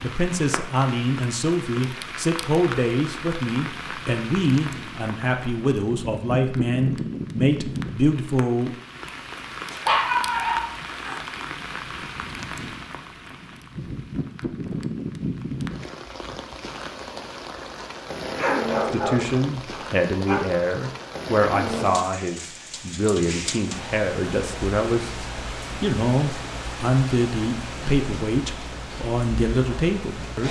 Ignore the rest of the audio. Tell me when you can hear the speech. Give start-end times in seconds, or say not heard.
0.0-8.8, 18.9-30.4.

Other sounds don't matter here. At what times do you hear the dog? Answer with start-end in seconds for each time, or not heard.
9.7-11.2, 18.4-20.4.